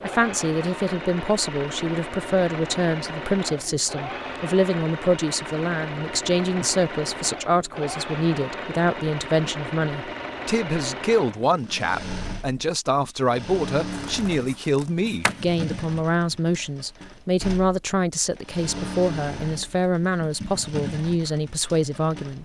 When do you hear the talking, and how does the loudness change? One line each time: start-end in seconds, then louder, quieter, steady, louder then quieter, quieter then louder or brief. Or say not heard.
0.0-22.4 steady.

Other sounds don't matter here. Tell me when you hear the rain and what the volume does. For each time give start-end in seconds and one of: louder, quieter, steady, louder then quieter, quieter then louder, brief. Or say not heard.
not heard.